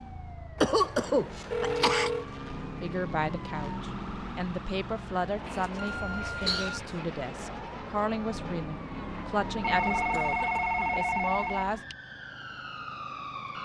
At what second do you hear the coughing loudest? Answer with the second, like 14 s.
1 s.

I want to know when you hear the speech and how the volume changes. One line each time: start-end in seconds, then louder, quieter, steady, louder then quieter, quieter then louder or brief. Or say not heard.
2.8-11.8 steady.